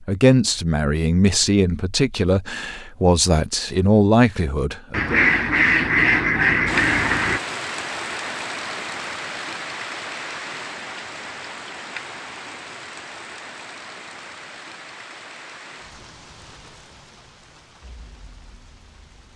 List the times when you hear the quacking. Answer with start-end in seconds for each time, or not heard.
4.9-7.4.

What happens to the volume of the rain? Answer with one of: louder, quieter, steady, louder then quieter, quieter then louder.
quieter.